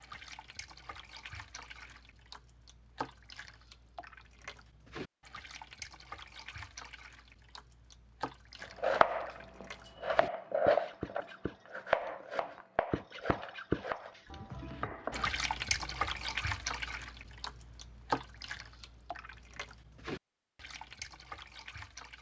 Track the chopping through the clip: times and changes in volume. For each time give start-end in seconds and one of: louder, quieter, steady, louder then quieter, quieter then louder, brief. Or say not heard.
8.8-15.2 louder then quieter.